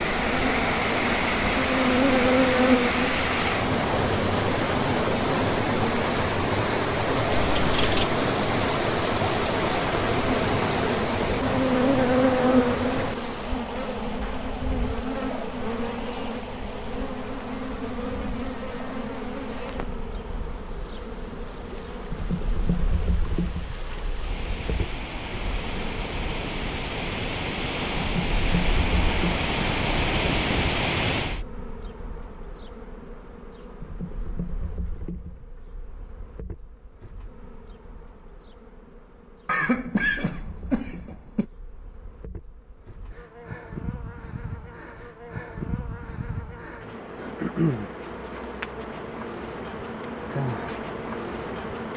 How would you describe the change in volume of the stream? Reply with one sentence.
The volume of the stream goes down, then up.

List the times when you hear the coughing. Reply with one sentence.
The coughing can be heard from 7.3 to 8.2 s and from 39.5 to 41.5 s.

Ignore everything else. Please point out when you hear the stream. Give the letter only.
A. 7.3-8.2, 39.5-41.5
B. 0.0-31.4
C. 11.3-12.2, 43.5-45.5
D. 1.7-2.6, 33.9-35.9
B.